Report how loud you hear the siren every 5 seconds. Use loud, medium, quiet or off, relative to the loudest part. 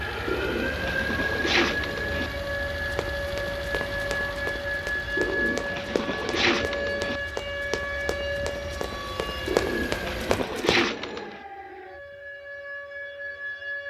loud, loud, medium.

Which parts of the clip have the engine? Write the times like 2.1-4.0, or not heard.
0.0-10.4.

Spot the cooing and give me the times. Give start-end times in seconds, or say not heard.
0.2-2.3, 5.2-7.2, 9.4-11.4.